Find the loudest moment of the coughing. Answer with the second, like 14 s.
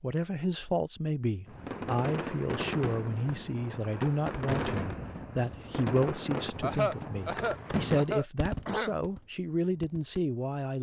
7 s.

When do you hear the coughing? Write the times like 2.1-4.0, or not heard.
6.6-8.9.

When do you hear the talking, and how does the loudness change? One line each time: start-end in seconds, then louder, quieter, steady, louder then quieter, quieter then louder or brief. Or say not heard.
0.0-10.7 steady.